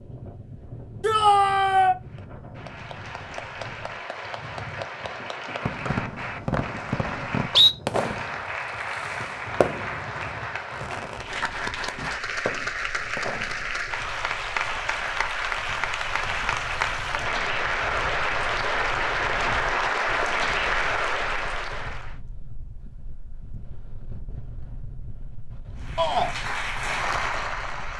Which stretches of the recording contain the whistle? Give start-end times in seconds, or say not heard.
5.8-7.8.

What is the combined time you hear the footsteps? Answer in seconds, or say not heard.
not heard.